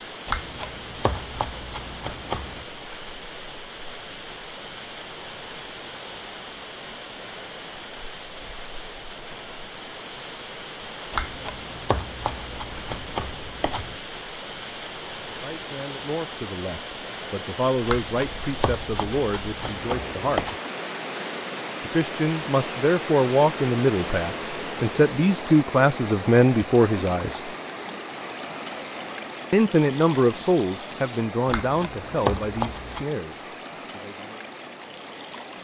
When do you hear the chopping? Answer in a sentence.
The chopping can be heard from 0.2 to 2.6 s, from 11.1 to 13.9 s, from 17.9 to 20.6 s and from 31.4 to 33.0 s.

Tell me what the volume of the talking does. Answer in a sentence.
The volume of the talking goes up, then down.